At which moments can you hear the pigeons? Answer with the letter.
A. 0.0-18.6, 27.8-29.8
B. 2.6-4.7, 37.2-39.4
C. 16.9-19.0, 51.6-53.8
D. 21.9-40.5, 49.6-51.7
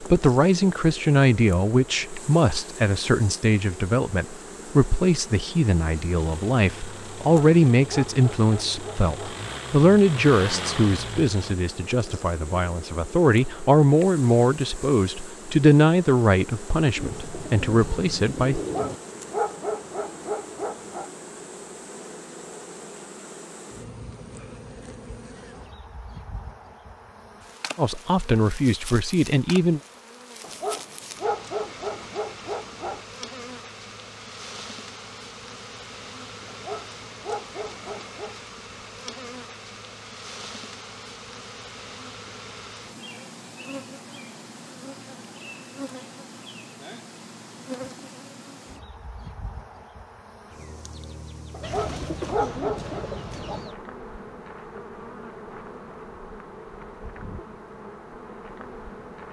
C.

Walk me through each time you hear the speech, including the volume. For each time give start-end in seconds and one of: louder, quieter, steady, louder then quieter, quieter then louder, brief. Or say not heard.
0.0-18.6 steady
27.8-29.8 brief.